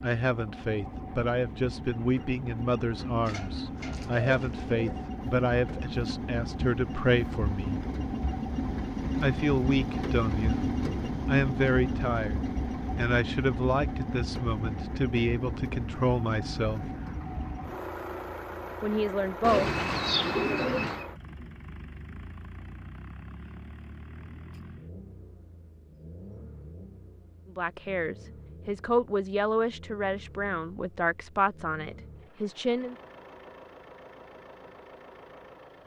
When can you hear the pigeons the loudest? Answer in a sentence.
The volume of the pigeons peaks at 20 seconds.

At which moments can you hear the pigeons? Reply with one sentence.
The pigeons can be heard from 3.2 to 4.8 s and from 19.4 to 21.1 s.